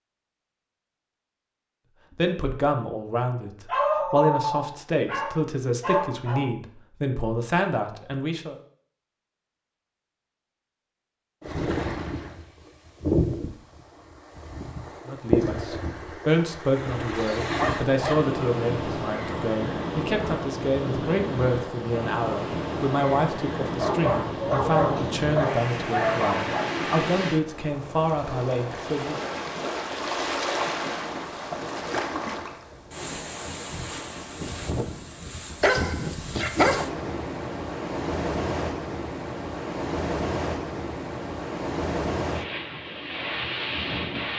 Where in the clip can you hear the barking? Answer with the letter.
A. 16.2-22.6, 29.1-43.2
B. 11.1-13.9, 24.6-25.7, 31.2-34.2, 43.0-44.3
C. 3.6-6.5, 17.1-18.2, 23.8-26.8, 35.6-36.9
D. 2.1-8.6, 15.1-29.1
C.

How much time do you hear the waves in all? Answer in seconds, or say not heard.
33 s.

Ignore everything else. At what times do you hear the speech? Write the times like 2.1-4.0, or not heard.
2.1-8.6, 15.1-29.1.